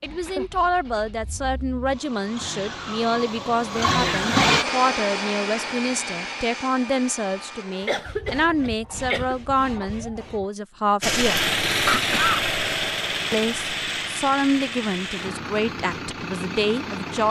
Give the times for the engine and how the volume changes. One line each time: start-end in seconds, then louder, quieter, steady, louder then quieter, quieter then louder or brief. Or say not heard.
0.0-4.7 louder
11.0-17.2 quieter.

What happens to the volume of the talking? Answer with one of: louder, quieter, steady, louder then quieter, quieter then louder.
steady.